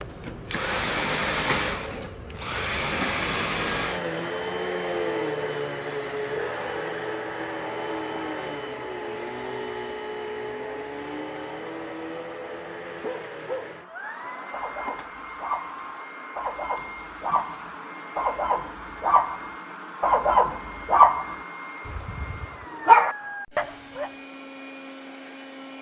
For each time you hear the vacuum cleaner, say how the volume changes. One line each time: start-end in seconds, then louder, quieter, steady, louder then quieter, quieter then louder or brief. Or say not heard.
0.0-25.7 quieter.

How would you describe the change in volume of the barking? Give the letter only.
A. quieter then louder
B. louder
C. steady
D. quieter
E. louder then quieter
B.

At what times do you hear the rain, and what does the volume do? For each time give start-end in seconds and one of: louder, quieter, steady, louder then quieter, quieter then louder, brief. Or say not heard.
not heard.